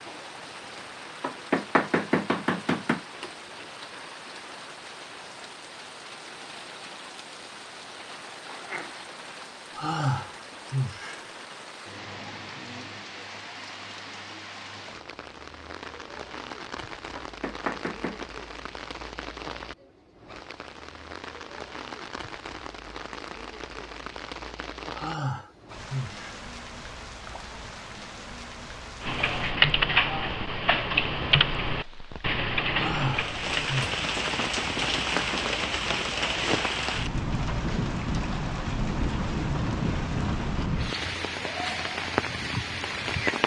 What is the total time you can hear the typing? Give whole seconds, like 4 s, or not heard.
5 s.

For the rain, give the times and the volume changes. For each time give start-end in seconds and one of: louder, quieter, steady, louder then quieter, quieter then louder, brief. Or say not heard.
0.0-43.4 louder.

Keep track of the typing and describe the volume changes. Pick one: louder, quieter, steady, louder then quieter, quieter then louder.
quieter.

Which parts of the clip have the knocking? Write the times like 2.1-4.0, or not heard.
1.2-3.0, 17.1-18.3, 34.0-35.5.